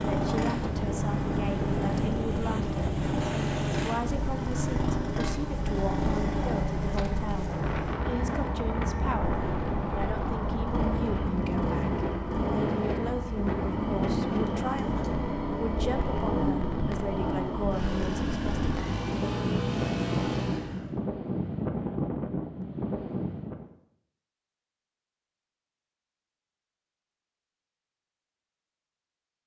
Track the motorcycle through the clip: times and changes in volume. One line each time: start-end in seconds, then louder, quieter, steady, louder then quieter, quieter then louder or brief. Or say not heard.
0.0-20.9 steady.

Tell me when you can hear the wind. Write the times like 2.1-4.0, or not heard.
0.0-23.7.